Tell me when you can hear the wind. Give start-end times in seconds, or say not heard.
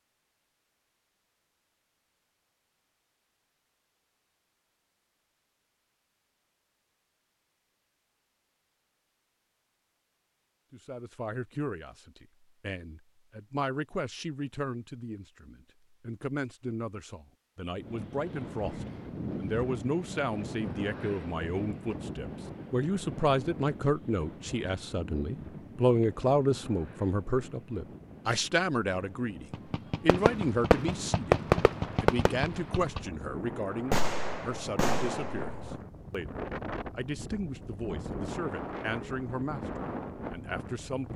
17.7-41.1.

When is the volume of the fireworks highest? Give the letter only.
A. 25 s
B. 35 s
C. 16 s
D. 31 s
D.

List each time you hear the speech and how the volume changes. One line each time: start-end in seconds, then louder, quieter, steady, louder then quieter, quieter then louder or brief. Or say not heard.
10.7-41.1 louder then quieter.